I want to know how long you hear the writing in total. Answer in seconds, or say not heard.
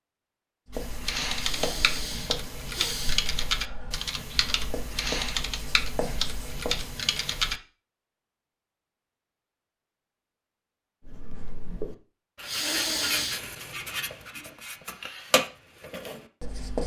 12 s.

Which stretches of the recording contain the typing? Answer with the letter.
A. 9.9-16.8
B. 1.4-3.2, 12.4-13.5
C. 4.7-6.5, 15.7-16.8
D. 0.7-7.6
D.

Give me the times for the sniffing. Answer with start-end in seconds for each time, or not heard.
1.4-3.2, 12.4-13.5.